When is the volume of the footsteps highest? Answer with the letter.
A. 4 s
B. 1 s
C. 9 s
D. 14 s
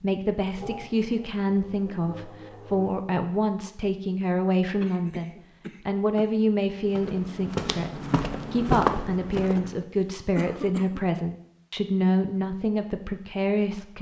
C.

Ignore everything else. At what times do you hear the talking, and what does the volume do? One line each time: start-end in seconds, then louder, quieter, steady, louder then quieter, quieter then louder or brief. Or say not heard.
0.0-13.9 steady.